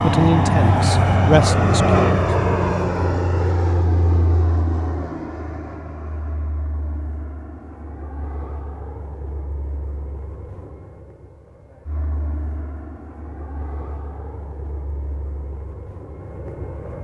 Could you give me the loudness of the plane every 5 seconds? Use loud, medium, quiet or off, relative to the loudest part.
loud, quiet, quiet, quiet.